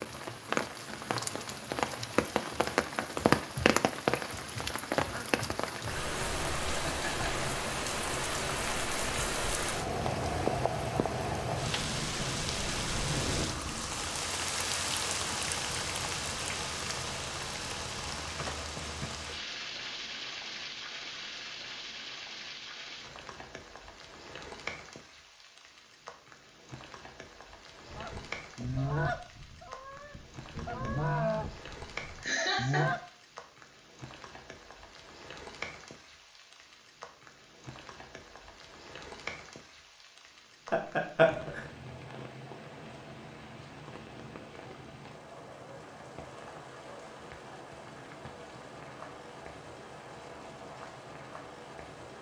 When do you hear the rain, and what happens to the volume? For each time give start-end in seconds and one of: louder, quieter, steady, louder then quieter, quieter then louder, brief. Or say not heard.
0.0-52.1 quieter.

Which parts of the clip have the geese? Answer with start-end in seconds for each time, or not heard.
27.9-33.0.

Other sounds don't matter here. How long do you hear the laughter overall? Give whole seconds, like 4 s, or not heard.
2 s.